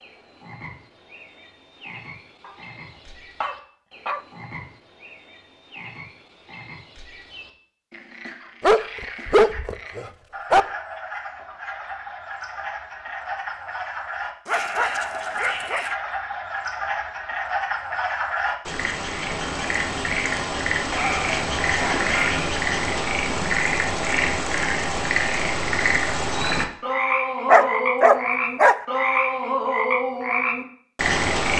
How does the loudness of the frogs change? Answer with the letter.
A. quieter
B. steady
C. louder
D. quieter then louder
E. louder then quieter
C.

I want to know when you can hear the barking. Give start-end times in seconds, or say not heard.
3.4-4.2, 8.6-10.7, 14.4-15.9, 20.9-22.1, 27.4-28.8.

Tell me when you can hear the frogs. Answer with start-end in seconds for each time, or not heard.
0.0-31.5.